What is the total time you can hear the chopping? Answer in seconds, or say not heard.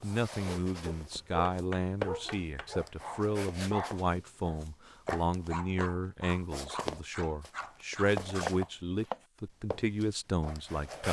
2 s.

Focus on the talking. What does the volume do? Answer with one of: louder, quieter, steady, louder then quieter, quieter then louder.
steady.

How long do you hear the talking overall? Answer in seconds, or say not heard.
11 s.